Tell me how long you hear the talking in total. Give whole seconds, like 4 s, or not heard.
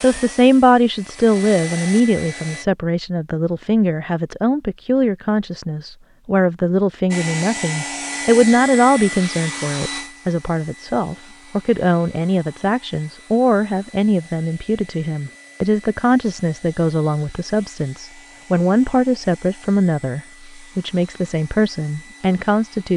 23 s.